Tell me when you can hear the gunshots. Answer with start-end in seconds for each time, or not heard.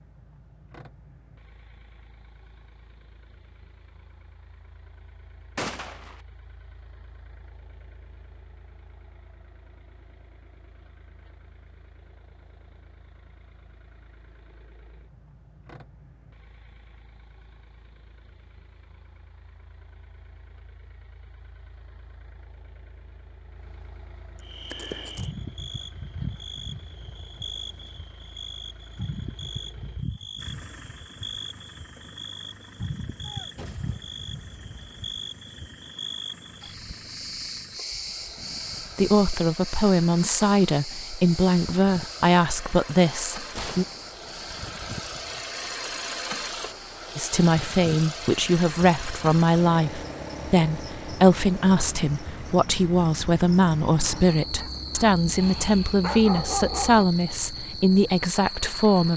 5.5-6.2, 33.2-35.1, 43.5-44.1.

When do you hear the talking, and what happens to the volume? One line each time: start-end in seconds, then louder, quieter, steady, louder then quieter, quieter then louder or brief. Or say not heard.
39.0-43.9 steady
47.1-59.1 steady.